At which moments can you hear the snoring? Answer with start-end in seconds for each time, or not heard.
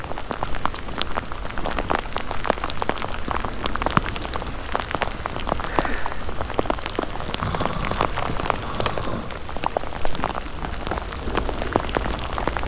7.4-9.3.